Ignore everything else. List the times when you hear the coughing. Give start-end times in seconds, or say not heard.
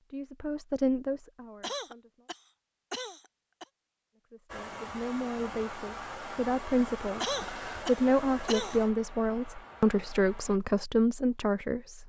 1.6-3.6, 7.2-8.8.